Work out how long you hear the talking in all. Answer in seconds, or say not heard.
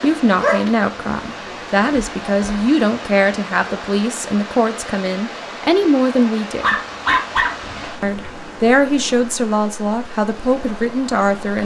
10 s.